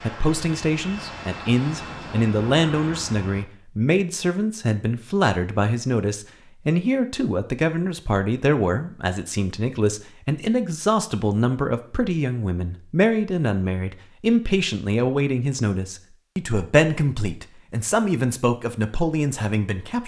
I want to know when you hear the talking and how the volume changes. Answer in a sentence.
The talking can be heard from 0.0 to 20.0 s, at a steady volume.